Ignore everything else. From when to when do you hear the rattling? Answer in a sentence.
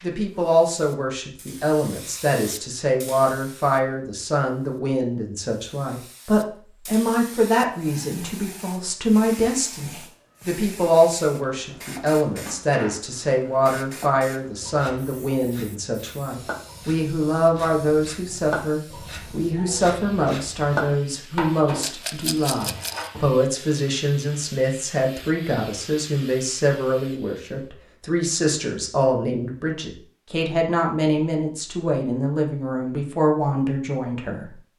You can hear the rattling from 21.8 to 23.1 s.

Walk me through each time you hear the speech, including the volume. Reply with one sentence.
You can hear the speech from 0.0 to 34.5 s, at a steady volume.